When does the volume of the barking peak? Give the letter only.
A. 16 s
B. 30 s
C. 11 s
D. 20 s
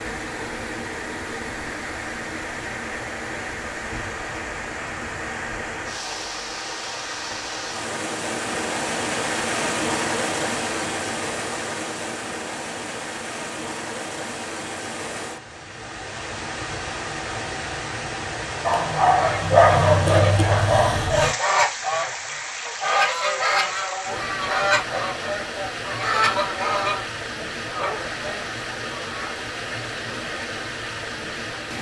D.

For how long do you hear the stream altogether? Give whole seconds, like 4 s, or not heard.
32 s.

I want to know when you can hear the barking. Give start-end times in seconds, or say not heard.
18.6-21.4.